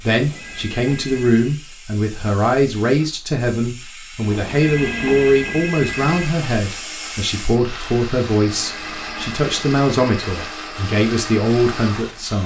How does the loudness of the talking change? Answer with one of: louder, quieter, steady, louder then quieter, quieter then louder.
steady.